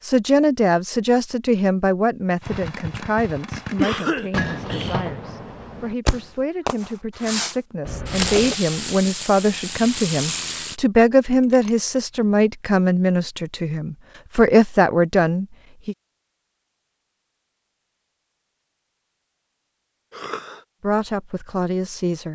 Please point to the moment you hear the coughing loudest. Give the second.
4 s.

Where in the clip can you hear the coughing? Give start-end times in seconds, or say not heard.
3.8-5.2, 7.8-8.6, 20.1-20.6.